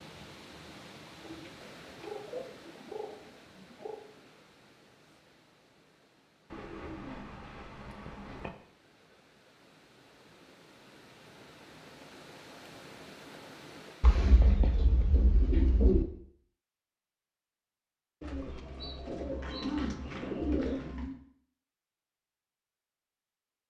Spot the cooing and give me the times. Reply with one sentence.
You can hear the cooing from 1.2 to 4.0 s, from 6.5 to 8.5 s, from 14.0 to 16.1 s and from 18.2 to 21.2 s.